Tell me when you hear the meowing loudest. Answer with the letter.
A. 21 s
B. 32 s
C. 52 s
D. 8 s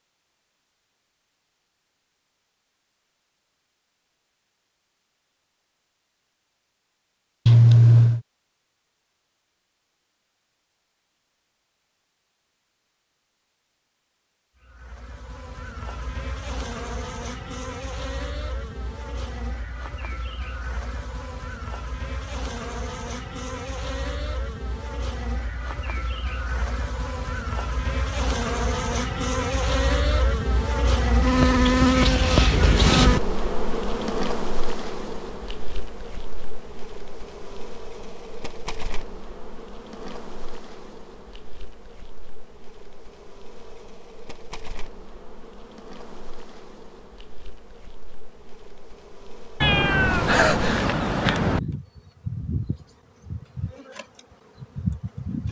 D.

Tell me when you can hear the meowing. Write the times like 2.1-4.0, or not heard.
7.5-8.2, 49.6-51.6.